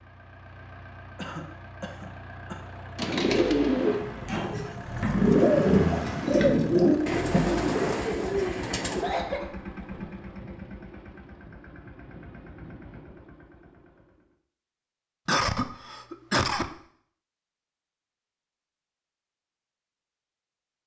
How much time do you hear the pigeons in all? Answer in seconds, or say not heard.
6 s.